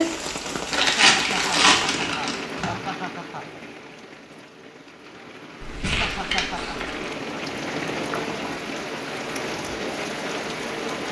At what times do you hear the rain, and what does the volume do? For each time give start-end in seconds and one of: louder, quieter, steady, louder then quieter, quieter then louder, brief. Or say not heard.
0.0-11.0 quieter then louder.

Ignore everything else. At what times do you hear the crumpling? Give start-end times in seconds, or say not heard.
0.7-2.7, 5.6-7.1.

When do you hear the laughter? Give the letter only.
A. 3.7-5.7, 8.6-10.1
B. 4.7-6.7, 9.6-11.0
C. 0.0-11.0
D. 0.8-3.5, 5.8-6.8
D.